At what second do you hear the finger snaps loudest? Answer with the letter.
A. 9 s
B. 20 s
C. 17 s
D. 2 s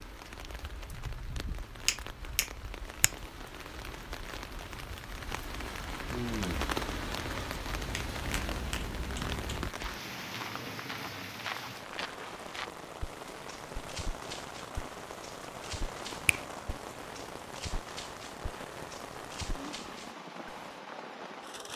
D.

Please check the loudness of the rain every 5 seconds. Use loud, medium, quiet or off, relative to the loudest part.
medium, loud, medium, medium, medium.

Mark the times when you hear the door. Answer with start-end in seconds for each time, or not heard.
not heard.